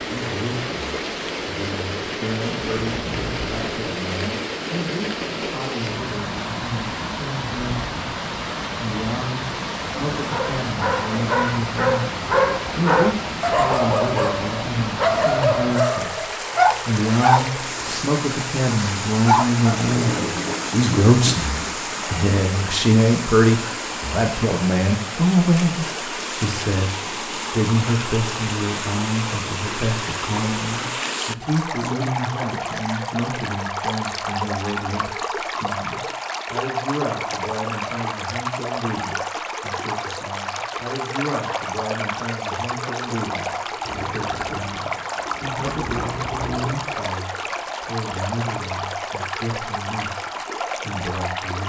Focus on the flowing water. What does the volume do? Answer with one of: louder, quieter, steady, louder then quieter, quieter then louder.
steady.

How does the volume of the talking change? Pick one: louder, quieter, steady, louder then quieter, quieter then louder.
louder then quieter.